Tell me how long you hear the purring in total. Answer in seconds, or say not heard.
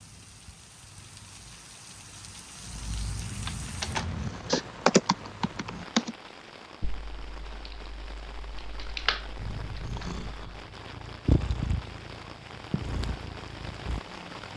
11 s.